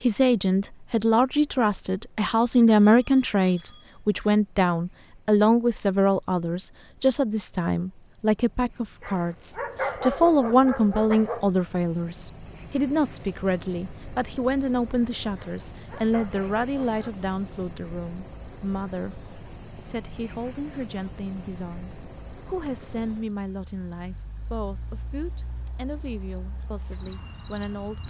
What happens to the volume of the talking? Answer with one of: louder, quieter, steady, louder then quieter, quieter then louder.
quieter.